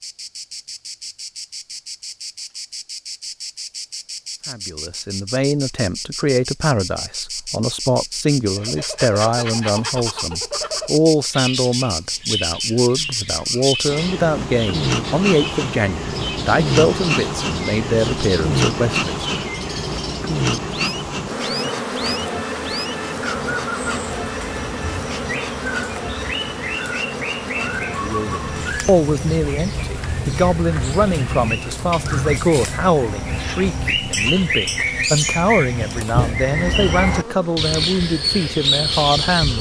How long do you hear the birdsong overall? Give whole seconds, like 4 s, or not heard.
31 s.